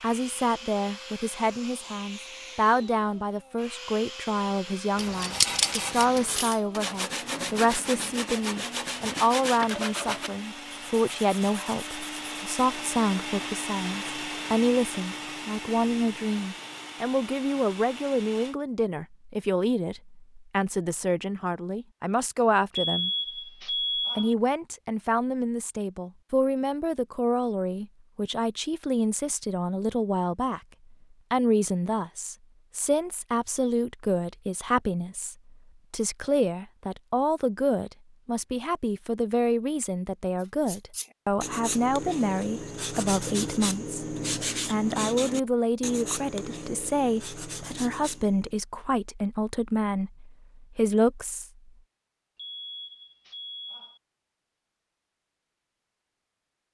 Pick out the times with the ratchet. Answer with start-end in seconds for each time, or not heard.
5.0-6.5.